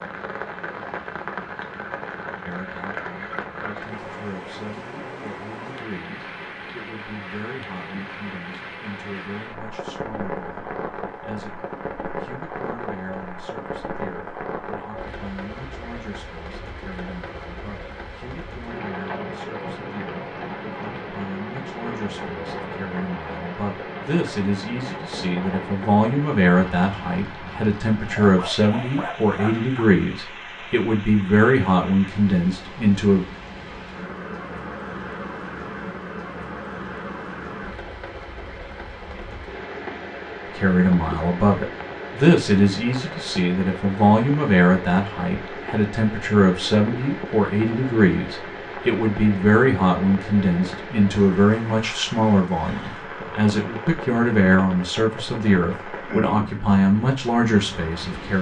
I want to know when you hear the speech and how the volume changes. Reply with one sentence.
You can hear the speech from 2.5 to 33.2 s, getting louder; and from 40.5 to 58.3 s, at a steady volume.